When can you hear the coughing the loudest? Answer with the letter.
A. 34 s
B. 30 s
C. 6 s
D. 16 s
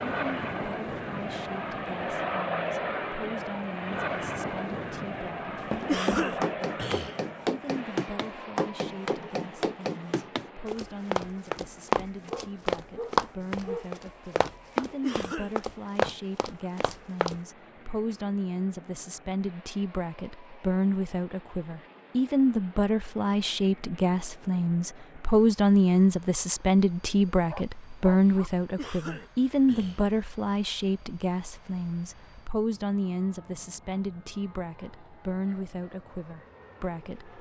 C.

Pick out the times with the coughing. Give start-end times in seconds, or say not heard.
5.8-7.2, 15.0-15.6, 28.8-30.1.